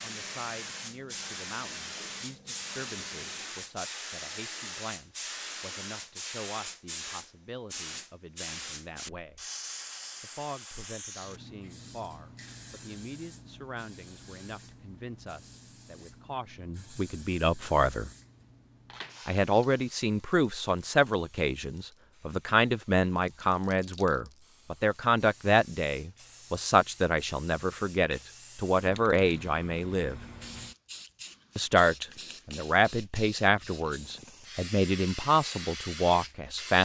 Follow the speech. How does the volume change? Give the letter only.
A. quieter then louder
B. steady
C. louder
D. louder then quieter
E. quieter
C.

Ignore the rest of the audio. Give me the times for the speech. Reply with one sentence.
You can hear the speech from 0.0 to 9.4 s, from 10.2 to 18.1 s, from 19.2 to 30.2 s and from 31.6 to 36.8 s.